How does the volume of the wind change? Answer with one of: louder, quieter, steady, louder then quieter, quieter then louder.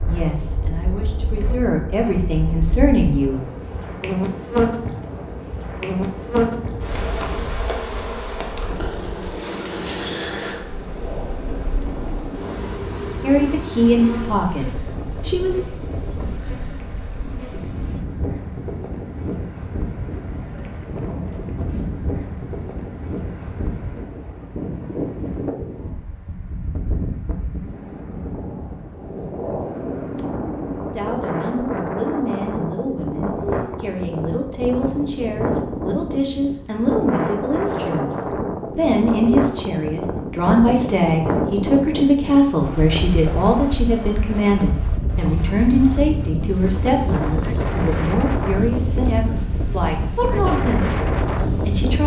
louder.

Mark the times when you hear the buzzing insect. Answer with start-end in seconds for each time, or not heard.
0.0-23.9, 46.5-51.9.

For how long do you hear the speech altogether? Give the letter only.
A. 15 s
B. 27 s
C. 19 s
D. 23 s
B.